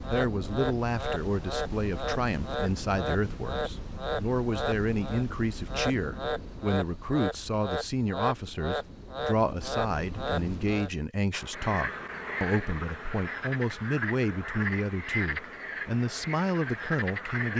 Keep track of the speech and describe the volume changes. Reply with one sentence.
The loudness of the speech stays about the same.